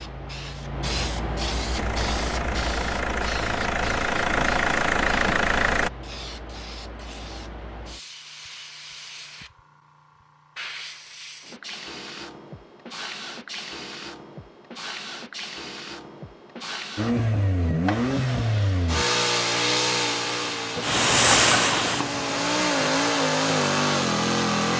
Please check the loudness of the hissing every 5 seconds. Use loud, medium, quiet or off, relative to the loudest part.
medium, quiet, quiet, quiet, loud.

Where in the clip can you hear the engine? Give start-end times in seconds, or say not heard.
1.8-5.9, 16.9-24.7.